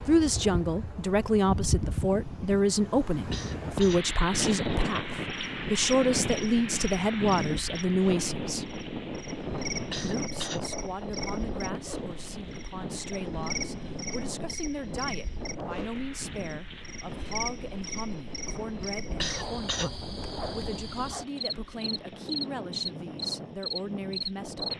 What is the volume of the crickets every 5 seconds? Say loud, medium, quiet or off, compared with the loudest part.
off, medium, medium, medium, loud.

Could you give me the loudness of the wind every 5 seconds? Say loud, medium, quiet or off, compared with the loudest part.
loud, loud, loud, medium, medium.